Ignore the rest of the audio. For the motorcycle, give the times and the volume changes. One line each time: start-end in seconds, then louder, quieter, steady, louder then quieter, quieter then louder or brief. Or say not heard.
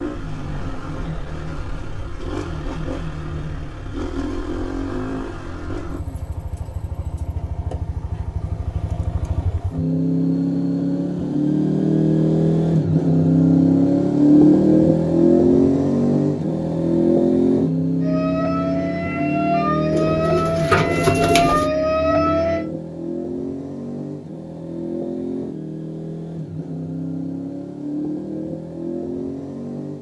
0.0-29.9 louder then quieter.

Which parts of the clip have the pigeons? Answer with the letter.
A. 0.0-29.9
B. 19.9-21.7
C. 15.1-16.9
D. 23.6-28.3
B.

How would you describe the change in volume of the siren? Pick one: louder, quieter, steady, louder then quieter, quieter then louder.
louder.